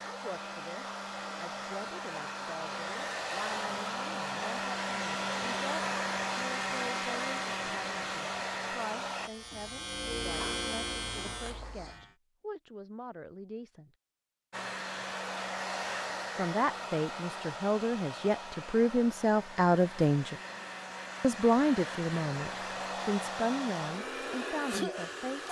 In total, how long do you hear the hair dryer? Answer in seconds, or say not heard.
20 s.